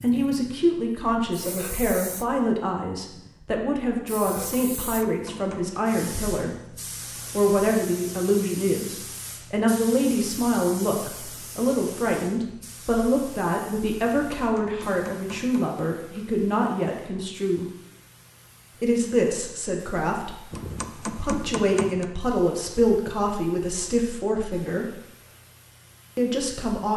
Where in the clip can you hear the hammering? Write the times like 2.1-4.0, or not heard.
4.3-5.8, 14.0-15.8, 20.5-22.1.